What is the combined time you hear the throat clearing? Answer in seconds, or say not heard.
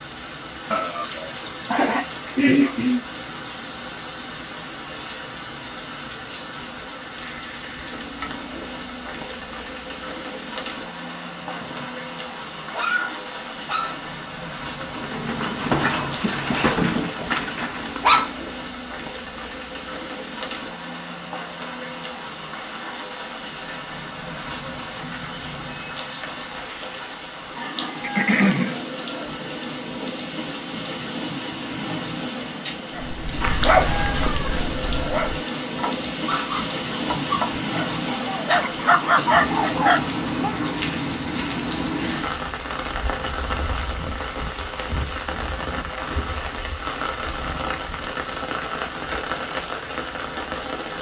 3 s.